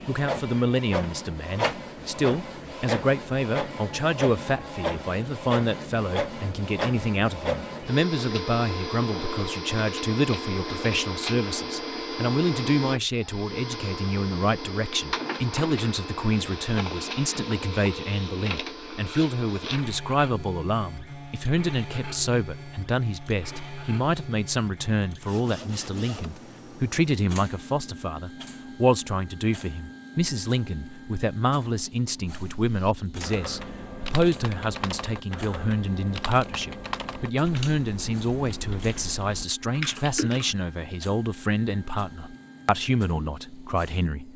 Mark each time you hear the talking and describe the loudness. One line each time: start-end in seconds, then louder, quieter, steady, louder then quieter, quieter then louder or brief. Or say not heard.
0.1-44.3 steady.